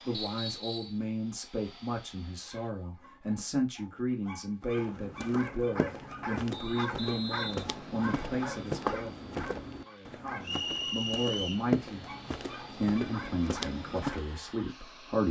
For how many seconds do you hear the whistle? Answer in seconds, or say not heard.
4 s.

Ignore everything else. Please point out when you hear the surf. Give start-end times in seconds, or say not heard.
not heard.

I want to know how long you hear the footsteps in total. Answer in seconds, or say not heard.
10 s.